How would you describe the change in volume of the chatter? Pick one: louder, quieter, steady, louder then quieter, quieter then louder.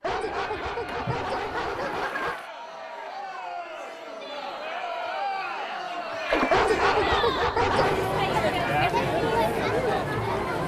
louder.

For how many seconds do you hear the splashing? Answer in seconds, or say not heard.
2 s.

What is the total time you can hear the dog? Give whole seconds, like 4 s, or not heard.
4 s.